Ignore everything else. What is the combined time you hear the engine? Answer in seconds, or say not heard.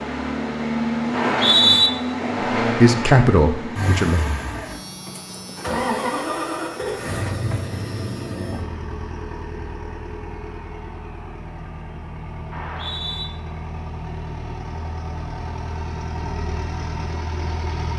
18 s.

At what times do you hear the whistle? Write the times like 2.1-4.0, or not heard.
1.1-1.9, 12.5-13.2.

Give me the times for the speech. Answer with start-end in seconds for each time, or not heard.
2.6-4.2.